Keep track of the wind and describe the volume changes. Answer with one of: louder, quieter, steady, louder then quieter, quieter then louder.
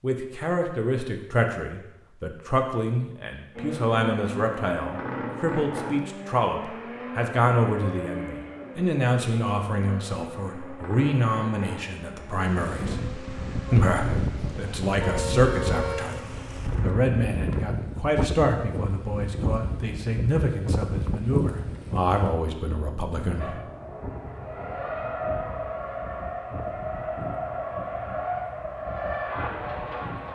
quieter.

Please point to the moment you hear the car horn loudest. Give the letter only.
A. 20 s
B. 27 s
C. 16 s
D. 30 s
C.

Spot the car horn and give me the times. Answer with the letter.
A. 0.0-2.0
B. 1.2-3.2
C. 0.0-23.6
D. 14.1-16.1
D.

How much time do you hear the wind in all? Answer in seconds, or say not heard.
18 s.